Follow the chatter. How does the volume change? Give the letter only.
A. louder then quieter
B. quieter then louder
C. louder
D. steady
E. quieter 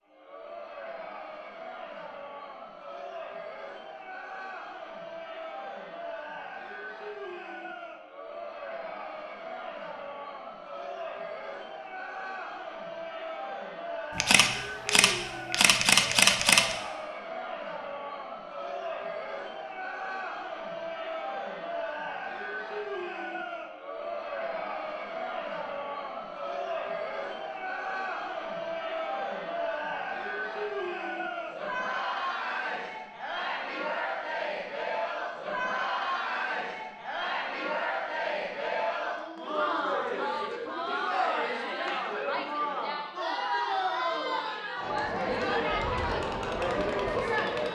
C.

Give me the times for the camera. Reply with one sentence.
The camera can be heard from 14.2 to 16.8 s.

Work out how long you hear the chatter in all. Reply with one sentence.
The chatter can be heard for 48 seconds in total.